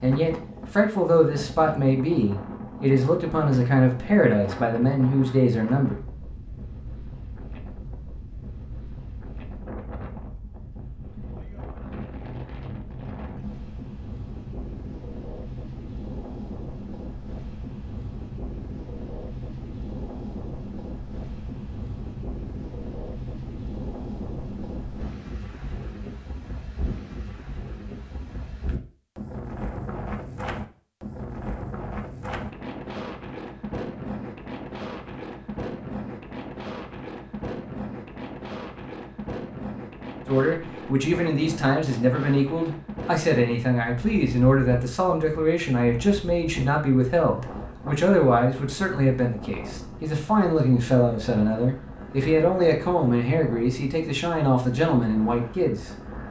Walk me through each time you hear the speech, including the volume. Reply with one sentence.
The speech can be heard from 0.0 to 6.0 s, at a steady volume; and from 40.2 to 55.9 s, at a steady volume.